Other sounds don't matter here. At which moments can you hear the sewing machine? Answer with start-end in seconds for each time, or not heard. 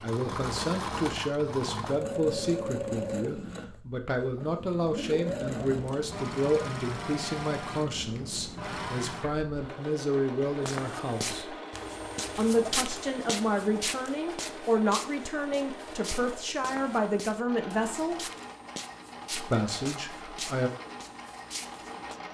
0.0-22.2.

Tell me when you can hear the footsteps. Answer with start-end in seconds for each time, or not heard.
10.6-22.2.